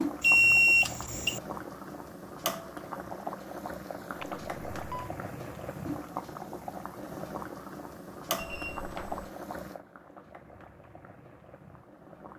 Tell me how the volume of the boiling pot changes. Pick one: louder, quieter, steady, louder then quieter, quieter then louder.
quieter.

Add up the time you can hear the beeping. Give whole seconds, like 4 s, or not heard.
3 s.